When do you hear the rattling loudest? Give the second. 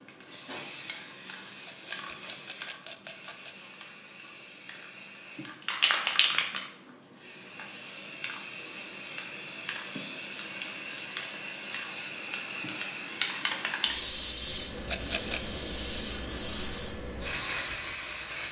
15 s.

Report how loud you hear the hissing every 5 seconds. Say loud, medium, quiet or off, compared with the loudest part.
medium, loud, loud, loud.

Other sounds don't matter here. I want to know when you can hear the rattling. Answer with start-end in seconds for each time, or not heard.
1.6-3.5, 14.8-15.5.